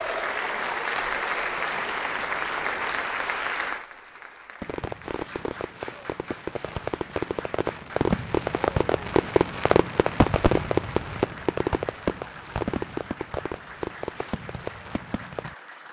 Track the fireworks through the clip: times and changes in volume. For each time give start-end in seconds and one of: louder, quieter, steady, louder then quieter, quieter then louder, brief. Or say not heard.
4.6-15.6 louder then quieter.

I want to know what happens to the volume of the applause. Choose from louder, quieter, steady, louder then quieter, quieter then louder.
quieter.